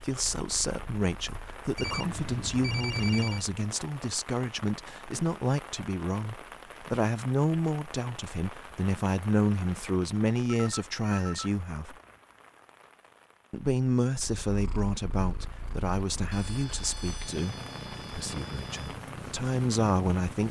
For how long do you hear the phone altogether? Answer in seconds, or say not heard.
6 s.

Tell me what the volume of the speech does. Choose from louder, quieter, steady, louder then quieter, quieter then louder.
steady.